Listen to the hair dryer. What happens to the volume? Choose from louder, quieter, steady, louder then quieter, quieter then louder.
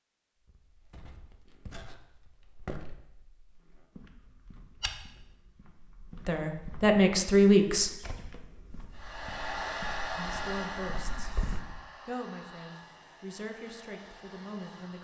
quieter.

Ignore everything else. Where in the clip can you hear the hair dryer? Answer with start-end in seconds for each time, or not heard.
8.9-14.9.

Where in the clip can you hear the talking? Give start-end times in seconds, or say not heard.
6.2-7.9, 10.2-11.3, 12.1-14.9.